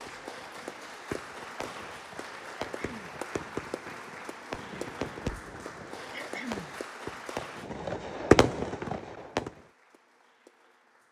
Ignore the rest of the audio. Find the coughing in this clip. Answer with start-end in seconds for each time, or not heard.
2.7-3.2, 6.1-6.8.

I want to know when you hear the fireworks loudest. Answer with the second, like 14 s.
8 s.